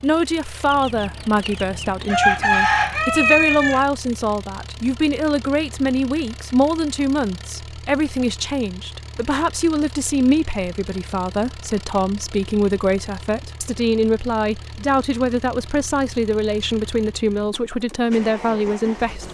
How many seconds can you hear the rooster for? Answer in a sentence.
The rooster can be heard for 3 seconds in total.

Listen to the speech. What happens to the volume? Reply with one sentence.
The volume of the speech stays about the same.